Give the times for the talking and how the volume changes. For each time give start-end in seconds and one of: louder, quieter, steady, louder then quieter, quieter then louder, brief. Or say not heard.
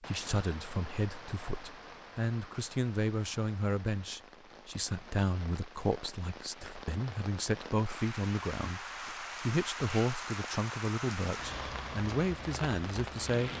0.0-13.5 steady.